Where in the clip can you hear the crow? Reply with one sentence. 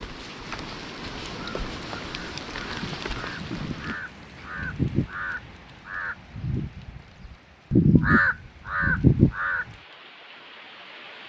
The crow can be heard from 1.3 to 7.0 s and from 7.7 to 9.8 s.